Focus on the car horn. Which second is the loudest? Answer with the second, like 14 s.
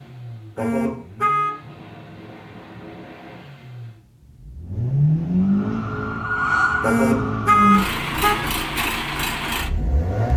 8 s.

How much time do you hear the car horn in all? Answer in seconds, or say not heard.
3 s.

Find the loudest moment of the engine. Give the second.
5 s.